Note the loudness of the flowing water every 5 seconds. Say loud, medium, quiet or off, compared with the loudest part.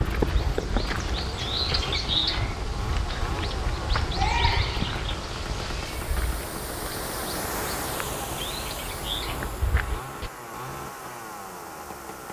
medium, loud, medium.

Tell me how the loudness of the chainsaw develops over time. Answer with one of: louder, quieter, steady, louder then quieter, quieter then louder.
steady.